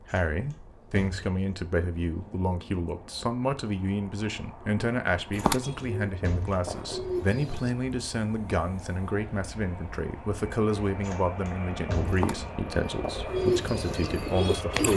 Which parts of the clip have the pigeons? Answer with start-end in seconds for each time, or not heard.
5.3-7.8, 12.1-14.9.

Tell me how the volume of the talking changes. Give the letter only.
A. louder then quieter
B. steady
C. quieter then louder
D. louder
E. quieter
B.